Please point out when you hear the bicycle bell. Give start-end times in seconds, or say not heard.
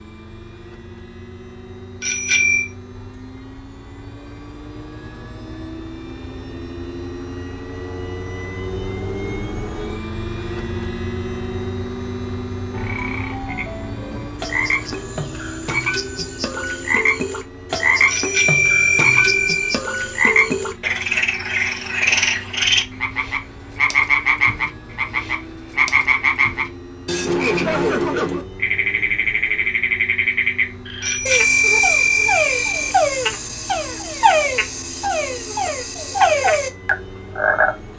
2.0-2.7, 18.1-19.8, 31.0-33.0.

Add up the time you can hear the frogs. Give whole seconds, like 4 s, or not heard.
25 s.